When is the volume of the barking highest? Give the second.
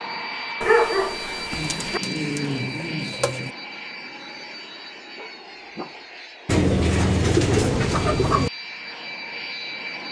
1 s.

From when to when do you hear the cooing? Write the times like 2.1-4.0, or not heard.
1.5-3.5, 6.5-8.5.